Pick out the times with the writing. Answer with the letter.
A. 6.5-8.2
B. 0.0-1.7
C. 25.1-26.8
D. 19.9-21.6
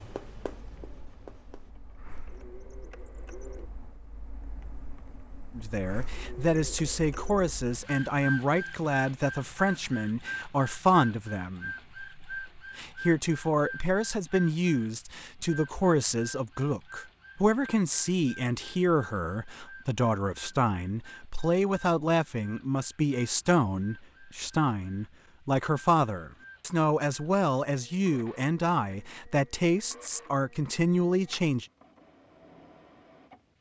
B.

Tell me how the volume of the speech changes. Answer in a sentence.
The loudness of the speech stays about the same.